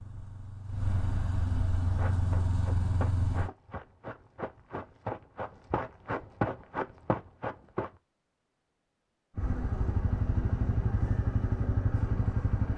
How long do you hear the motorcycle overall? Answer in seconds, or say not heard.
7 s.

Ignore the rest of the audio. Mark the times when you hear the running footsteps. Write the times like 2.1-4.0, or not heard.
1.8-7.9.